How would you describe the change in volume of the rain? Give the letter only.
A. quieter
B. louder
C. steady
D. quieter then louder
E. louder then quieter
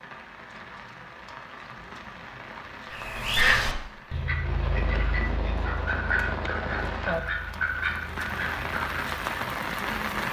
B.